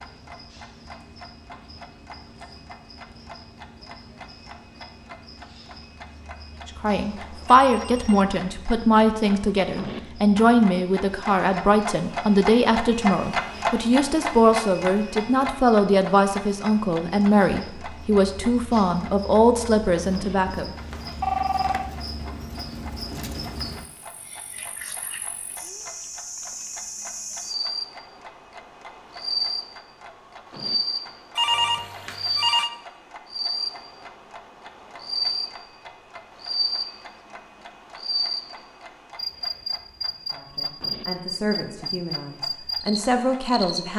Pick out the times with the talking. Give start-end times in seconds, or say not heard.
6.8-20.7, 40.3-43.9.